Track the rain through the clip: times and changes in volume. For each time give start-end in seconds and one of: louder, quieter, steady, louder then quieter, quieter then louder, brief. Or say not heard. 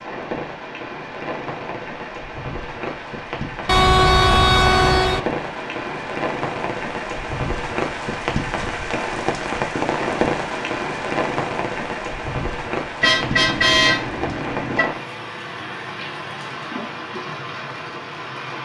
0.0-18.6 louder then quieter.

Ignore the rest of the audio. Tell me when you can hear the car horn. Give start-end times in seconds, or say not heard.
3.6-5.2, 13.0-14.9.